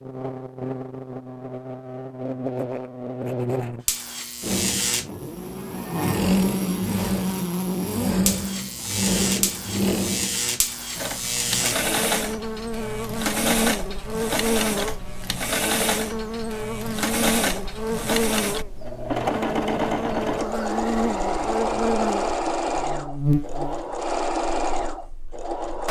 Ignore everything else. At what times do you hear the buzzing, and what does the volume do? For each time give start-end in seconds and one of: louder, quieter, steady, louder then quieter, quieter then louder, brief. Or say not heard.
0.0-25.8 steady.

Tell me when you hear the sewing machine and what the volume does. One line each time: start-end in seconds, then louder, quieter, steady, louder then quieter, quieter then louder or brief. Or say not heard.
4.4-25.8 steady.